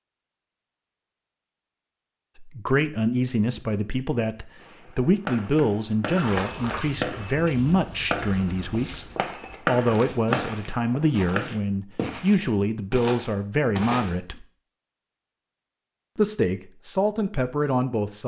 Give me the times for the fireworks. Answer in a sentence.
You can hear the fireworks from 4.6 to 11.4 s.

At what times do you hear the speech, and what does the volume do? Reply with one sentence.
You can hear the speech from 2.4 to 14.4 s, at a steady volume; and briefly from 16.1 to 18.2 s.